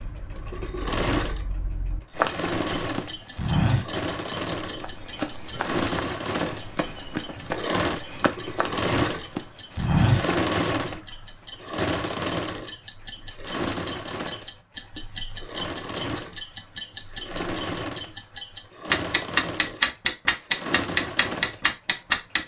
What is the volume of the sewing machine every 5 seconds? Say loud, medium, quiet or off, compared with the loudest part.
loud, loud, loud, medium, medium.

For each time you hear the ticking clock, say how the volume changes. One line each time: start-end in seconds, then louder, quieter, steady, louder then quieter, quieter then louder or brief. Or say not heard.
0.0-22.4 louder.